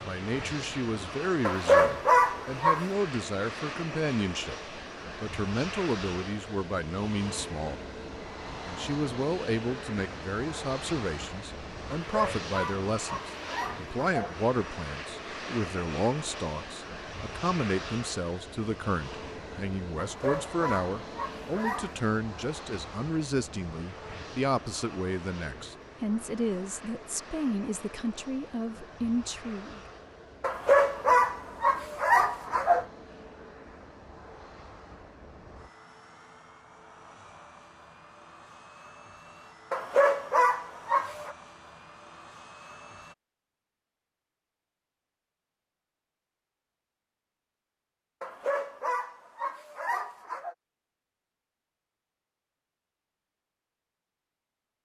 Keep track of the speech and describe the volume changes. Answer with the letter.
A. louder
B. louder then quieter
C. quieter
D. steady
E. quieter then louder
D.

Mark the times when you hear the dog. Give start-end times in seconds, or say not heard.
1.4-2.9, 12.1-14.3, 19.9-22.0, 30.4-32.9, 39.7-41.4, 48.2-50.5.